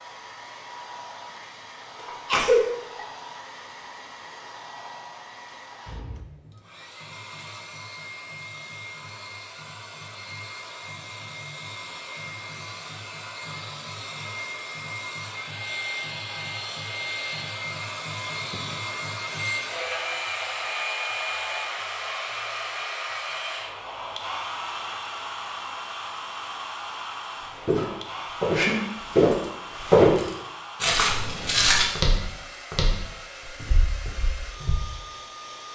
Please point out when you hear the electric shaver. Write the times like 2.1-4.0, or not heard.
not heard.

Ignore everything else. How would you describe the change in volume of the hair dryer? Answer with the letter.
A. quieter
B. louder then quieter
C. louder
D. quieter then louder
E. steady
B.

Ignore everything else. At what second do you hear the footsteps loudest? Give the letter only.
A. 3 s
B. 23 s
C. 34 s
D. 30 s
D.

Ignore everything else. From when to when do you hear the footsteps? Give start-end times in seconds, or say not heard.
27.5-34.8.